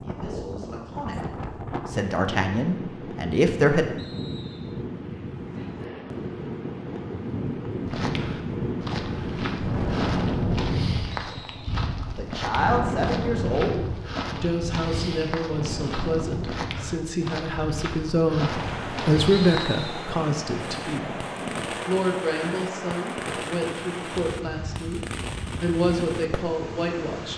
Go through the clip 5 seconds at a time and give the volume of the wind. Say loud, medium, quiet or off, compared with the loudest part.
medium, loud, loud, medium, medium, medium.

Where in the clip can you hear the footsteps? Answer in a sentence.
The footsteps can be heard from 7.8 to 19.6 s.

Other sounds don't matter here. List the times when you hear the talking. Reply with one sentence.
You can hear the talking from 0.0 to 3.9 s, from 12.1 to 21.2 s, from 21.9 to 25.0 s and from 25.6 to 27.3 s.